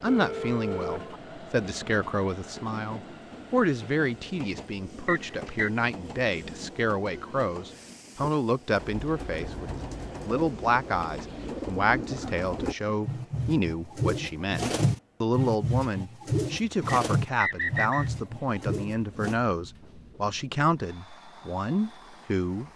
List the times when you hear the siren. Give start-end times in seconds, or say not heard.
not heard.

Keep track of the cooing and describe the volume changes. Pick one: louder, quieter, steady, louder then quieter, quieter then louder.
louder.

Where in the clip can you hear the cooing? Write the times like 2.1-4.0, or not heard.
8.2-19.4.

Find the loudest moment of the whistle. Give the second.
18 s.